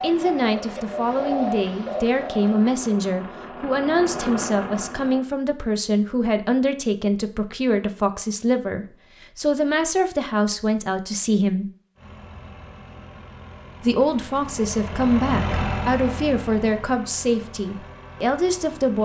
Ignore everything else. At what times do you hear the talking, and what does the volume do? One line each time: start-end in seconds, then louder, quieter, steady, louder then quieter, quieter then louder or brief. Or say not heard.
0.0-11.7 steady
13.8-19.0 steady.